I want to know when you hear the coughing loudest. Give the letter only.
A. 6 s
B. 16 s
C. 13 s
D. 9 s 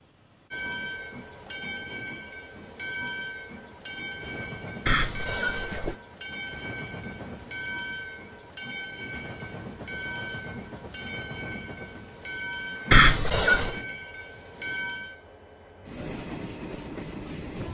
C.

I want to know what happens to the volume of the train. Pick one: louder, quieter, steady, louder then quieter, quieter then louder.
steady.